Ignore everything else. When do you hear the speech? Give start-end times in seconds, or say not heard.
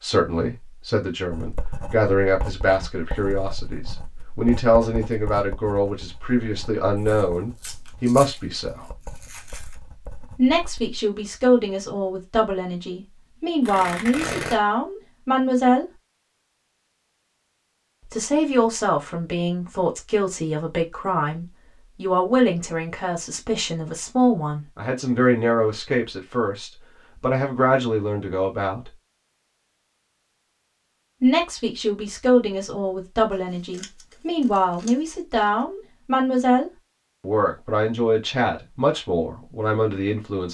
0.0-8.8, 10.3-15.8, 18.0-28.9, 31.2-40.5.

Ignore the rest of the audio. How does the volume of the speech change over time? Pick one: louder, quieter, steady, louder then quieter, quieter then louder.
steady.